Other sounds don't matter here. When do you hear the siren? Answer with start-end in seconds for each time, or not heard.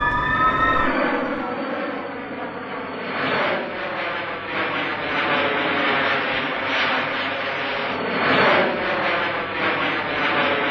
0.0-1.6.